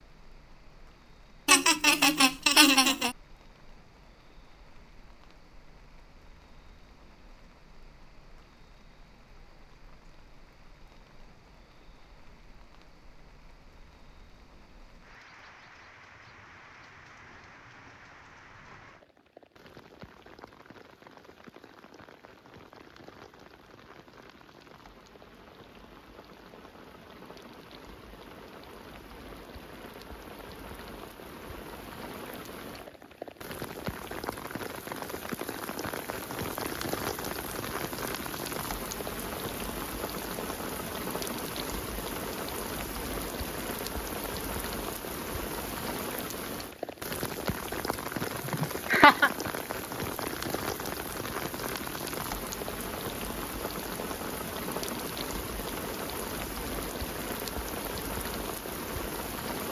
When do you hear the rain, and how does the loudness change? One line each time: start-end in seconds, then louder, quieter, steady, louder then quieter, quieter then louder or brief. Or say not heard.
0.0-59.6 louder.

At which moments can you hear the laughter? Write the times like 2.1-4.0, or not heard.
1.4-3.1, 48.2-49.3.